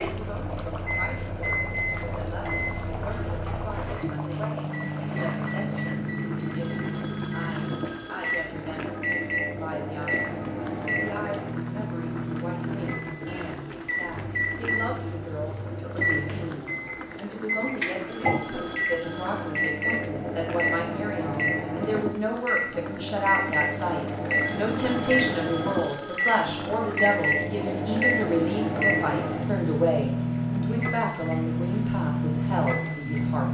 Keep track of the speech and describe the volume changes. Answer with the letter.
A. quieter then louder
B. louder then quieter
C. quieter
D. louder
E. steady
D.